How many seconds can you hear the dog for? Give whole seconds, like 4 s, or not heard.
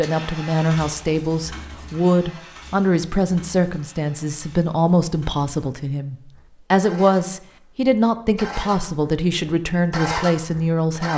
not heard.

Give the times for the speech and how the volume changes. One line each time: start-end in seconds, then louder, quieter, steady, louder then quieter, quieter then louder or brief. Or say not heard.
0.0-11.1 steady.